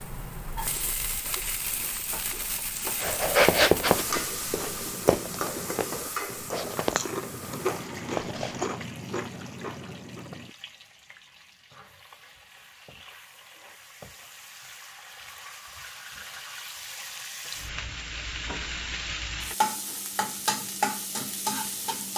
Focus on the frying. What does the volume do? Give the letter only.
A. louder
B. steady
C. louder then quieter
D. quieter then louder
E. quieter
D.